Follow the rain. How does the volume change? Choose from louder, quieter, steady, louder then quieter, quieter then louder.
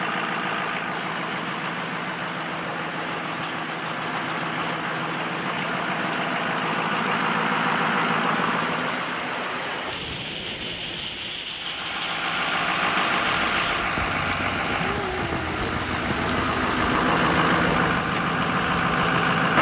steady.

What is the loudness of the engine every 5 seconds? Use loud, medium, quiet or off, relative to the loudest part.
medium, loud, loud, loud.